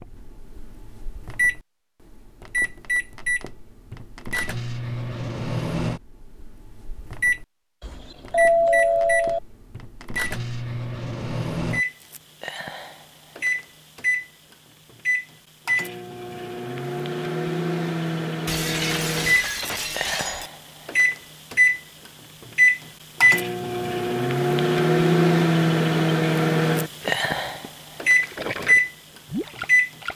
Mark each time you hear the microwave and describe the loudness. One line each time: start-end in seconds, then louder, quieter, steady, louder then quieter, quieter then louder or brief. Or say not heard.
0.0-29.9 louder.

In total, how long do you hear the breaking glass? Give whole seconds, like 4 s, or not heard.
2 s.